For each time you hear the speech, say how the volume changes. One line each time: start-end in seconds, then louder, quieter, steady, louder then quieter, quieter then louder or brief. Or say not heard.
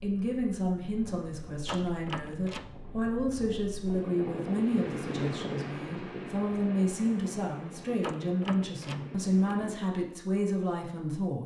0.0-11.4 steady.